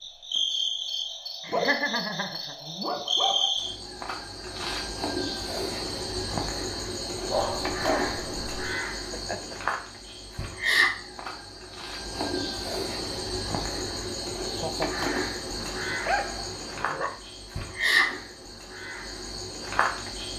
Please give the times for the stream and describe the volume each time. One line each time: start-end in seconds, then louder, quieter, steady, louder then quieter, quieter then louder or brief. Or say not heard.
not heard.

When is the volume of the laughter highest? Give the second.
2 s.